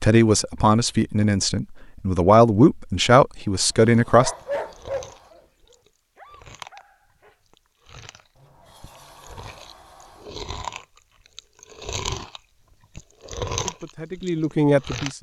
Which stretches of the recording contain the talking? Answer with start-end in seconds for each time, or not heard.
0.0-4.3, 13.6-15.1.